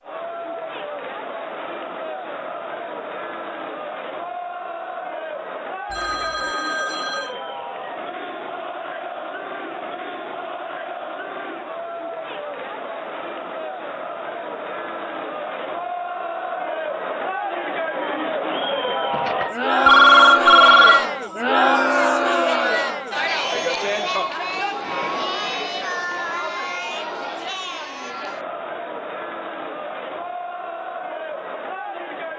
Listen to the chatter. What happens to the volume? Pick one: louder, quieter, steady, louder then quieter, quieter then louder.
louder then quieter.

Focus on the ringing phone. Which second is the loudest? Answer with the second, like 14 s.
20 s.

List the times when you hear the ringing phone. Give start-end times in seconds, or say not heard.
5.9-7.3, 19.1-21.1.